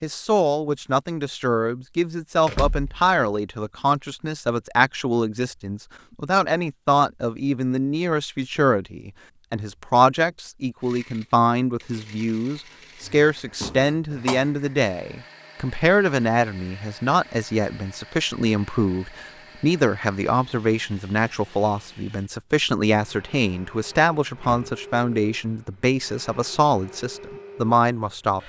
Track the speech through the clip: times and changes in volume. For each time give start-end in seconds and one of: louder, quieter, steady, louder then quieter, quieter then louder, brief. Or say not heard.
0.0-28.4 steady.